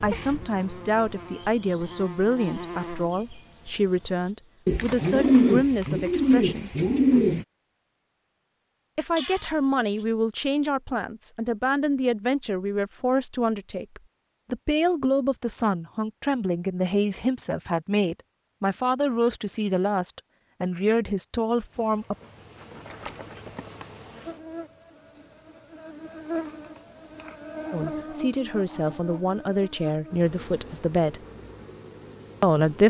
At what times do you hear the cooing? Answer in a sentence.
The cooing can be heard from 4.7 to 7.5 s.